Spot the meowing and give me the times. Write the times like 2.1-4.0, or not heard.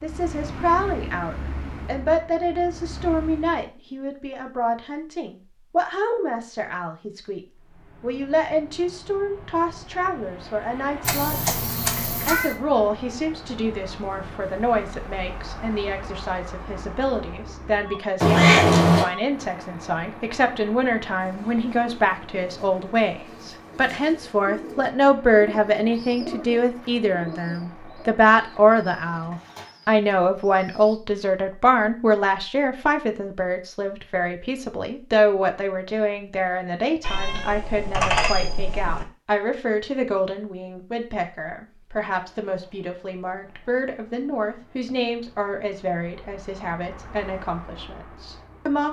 11.0-12.6, 18.2-19.1, 37.0-39.0.